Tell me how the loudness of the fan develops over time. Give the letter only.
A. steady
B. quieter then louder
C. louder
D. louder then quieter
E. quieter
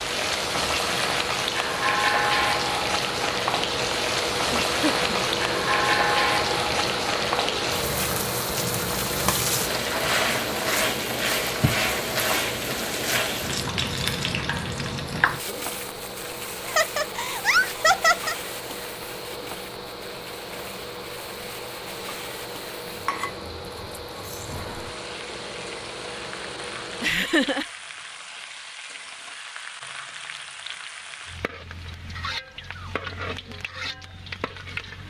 E.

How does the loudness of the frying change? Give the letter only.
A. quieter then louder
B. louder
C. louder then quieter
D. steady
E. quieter
E.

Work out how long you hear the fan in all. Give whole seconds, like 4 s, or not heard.
27 s.